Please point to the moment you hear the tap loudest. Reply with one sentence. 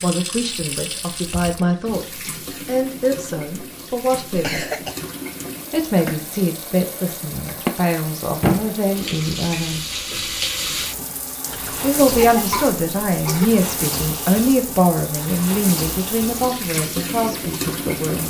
The loudest moment of the tap is at 8 seconds.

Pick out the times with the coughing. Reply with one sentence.
You can hear the coughing from 4.4 to 5.0 s and from 11.5 to 13.5 s.